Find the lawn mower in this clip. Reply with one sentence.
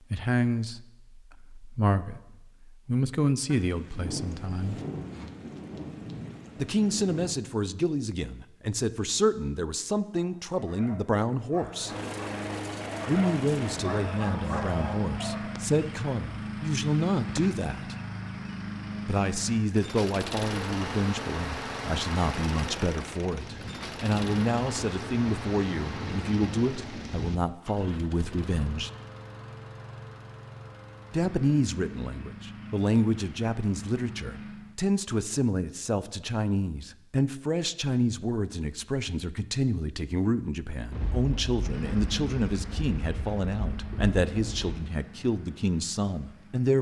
The lawn mower can be heard from 11.7 to 34.8 s and from 41.5 to 46.7 s.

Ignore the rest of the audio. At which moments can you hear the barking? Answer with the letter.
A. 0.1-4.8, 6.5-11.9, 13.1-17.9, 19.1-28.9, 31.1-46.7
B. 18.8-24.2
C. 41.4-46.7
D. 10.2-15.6
D.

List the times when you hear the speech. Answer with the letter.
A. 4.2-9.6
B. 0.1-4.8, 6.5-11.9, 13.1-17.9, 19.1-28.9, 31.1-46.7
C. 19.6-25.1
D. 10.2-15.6
B.